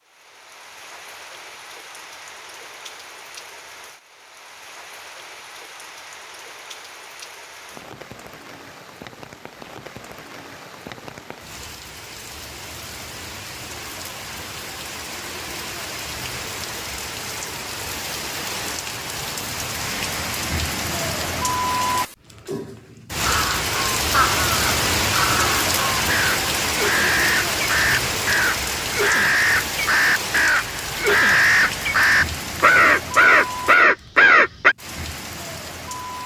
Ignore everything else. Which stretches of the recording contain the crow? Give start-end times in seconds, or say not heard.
23.2-34.8.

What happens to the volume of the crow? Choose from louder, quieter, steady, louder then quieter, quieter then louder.
louder.